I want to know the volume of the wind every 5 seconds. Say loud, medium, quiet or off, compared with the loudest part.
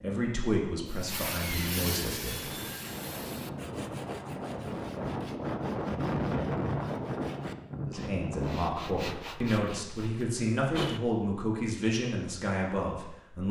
medium, loud, off.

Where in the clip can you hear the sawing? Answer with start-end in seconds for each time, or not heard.
0.9-11.4.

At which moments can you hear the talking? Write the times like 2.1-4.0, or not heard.
0.0-2.5, 7.8-13.4.